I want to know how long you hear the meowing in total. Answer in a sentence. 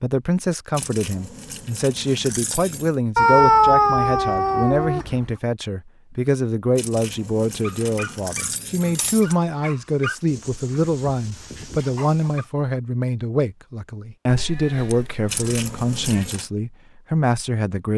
You can hear the meowing for 4 seconds altogether.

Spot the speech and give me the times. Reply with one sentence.
The speech can be heard from 0.0 to 17.9 s.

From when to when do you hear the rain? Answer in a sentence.
You can't hear the rain here.